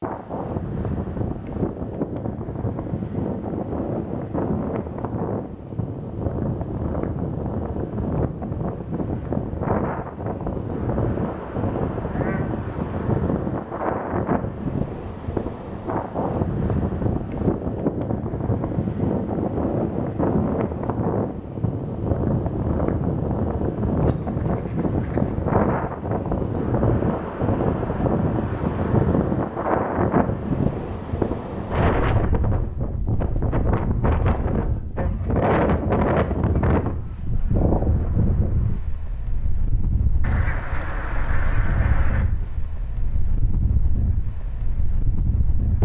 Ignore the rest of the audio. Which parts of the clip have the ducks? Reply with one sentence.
The ducks can be heard from 10.8 to 12.6 s, from 24.0 to 25.9 s and from 40.2 to 42.2 s.